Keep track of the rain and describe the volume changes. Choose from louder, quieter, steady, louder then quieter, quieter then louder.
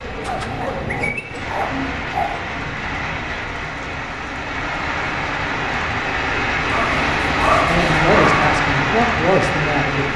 louder.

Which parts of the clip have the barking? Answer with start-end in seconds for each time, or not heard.
0.1-2.4, 6.7-8.5.